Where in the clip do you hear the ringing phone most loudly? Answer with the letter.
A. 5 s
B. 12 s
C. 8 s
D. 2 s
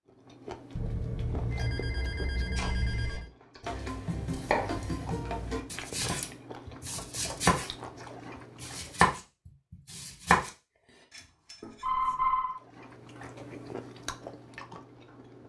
B.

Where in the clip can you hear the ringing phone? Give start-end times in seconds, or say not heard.
0.8-3.3, 11.6-12.6.